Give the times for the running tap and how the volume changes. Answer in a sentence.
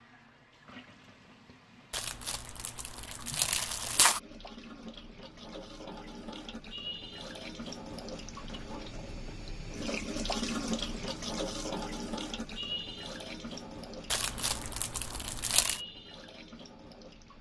You can hear the running tap from 0.0 to 17.3 s, getting louder then quieter.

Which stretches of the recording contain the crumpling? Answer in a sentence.
The crumpling can be heard from 1.9 to 4.2 s and from 14.1 to 15.8 s.